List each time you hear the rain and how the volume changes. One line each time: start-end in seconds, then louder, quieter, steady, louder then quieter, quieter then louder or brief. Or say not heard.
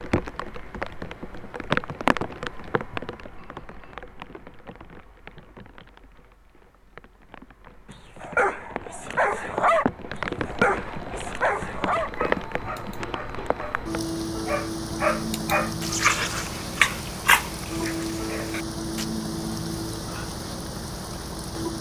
0.0-21.7 quieter then louder.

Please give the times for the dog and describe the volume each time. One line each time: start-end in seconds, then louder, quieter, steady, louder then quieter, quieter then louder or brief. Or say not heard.
7.9-19.1 quieter then louder.